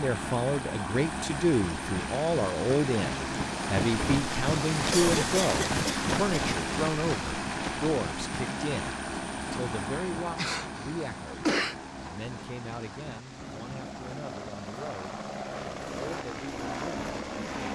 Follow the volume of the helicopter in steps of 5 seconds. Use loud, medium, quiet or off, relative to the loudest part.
loud, loud, medium, loud.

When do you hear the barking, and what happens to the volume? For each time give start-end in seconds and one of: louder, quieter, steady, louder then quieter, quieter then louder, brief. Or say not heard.
not heard.